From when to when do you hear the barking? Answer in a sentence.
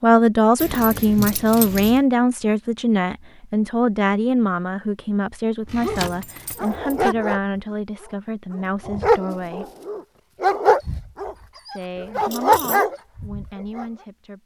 You can hear the barking from 5.7 to 7.4 s and from 8.0 to 13.8 s.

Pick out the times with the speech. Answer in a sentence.
The speech can be heard from 0.0 to 9.7 s and from 11.7 to 14.4 s.